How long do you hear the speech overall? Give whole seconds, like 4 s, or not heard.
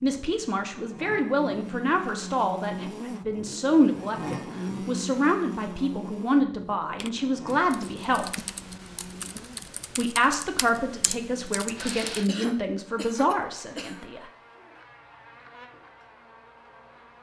13 s.